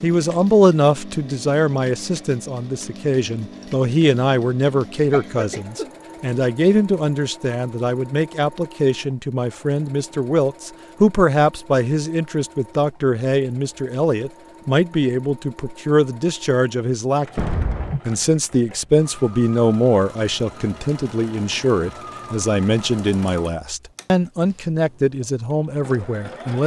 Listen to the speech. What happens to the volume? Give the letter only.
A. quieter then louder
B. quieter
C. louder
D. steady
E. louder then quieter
D.